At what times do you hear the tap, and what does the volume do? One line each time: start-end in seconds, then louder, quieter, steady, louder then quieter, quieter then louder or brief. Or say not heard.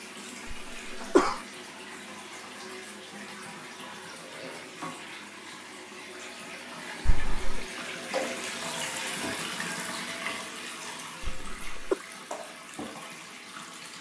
0.0-13.9 louder then quieter.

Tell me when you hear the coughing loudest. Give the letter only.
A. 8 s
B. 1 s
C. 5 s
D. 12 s
B.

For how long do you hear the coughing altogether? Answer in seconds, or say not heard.
2 s.